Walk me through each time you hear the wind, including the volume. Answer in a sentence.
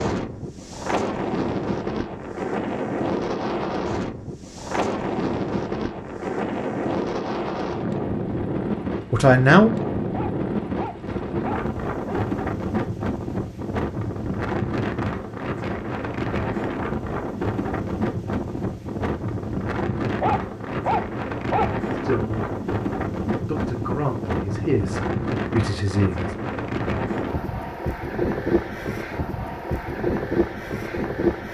You can hear the wind from 0.0 to 31.5 s, at a steady volume.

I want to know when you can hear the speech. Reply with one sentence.
The speech can be heard from 9.1 to 9.7 s, from 21.9 to 22.6 s and from 23.4 to 26.4 s.